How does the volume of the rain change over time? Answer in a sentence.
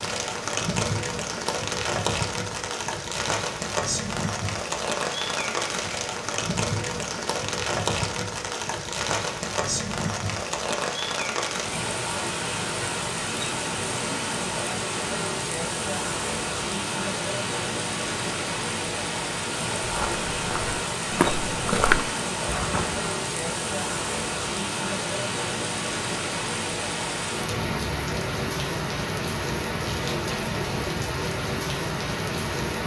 The loudness of the rain stays about the same.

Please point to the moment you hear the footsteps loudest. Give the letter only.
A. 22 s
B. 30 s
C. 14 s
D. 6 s
A.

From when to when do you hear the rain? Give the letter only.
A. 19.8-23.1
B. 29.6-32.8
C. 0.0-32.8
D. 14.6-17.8
C.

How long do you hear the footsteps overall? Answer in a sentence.
The footsteps can be heard for 3 seconds in total.